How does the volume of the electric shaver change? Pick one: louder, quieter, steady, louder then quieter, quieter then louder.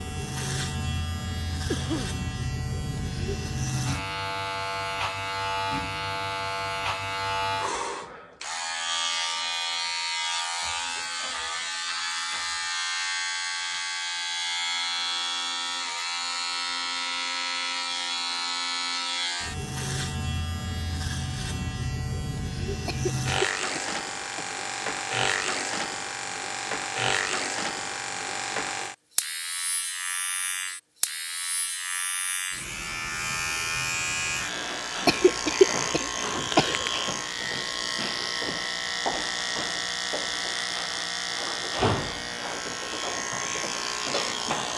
steady.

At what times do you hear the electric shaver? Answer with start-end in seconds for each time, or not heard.
0.0-44.7.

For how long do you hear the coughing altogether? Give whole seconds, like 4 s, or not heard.
4 s.